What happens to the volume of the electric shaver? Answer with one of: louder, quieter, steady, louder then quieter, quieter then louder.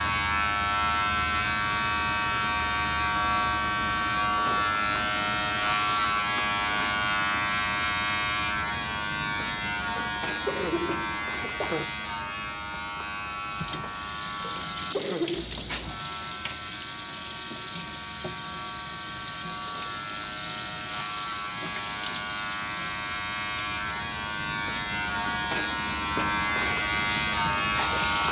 quieter then louder.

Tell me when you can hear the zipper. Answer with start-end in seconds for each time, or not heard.
not heard.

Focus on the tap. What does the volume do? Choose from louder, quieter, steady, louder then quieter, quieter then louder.
quieter.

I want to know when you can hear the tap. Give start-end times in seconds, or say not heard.
13.4-28.2.